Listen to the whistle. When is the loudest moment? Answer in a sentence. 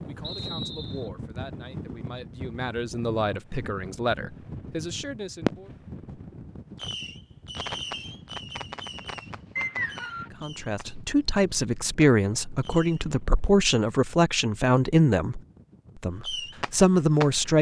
The loudest moment of the whistle is at 10 seconds.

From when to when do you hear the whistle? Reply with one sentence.
The whistle can be heard from 0.2 to 1.1 s and from 9.6 to 10.3 s.